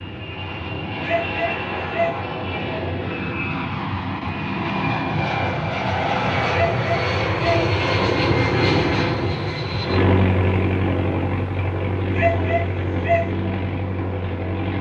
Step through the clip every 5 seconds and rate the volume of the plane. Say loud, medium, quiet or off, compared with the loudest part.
medium, loud, loud.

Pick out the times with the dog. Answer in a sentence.
The dog can be heard from 1.0 to 2.1 s, from 6.5 to 7.7 s and from 12.2 to 13.2 s.